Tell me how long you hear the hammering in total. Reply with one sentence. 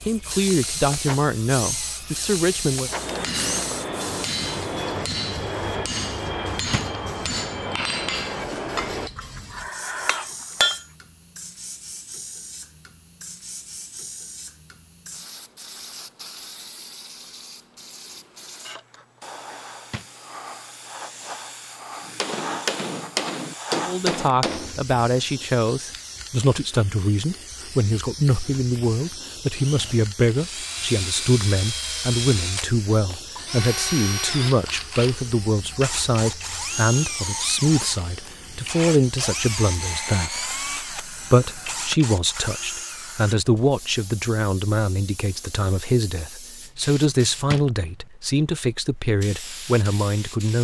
You can hear the hammering for 11 seconds altogether.